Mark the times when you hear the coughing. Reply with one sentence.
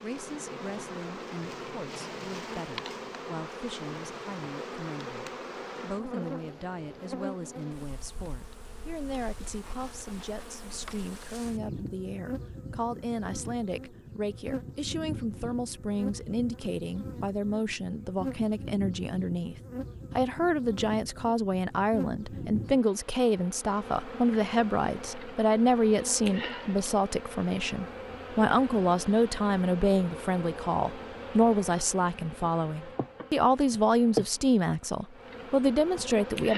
You can't hear the coughing here.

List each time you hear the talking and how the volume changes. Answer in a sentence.
You can hear the talking from 0.0 to 36.5 s, getting louder.